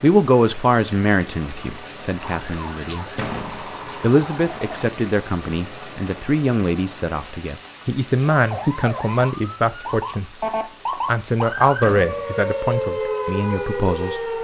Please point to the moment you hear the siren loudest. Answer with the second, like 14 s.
13 s.